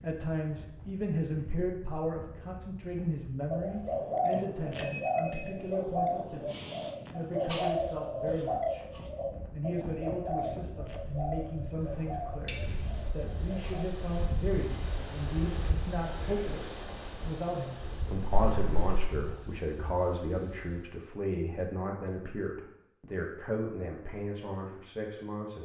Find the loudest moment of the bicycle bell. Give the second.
13 s.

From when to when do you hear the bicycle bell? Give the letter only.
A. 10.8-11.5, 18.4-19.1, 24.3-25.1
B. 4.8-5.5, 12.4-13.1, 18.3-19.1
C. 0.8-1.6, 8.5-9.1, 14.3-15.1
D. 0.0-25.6
B.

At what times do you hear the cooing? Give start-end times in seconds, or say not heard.
3.5-13.8.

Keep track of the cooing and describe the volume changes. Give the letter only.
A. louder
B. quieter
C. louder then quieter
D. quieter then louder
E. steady
B.